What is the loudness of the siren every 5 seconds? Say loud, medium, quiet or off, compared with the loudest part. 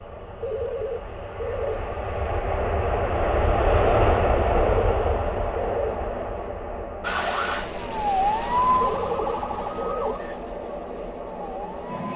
off, loud, quiet.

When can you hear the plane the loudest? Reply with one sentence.
The loudest moment of the plane is at 4 seconds.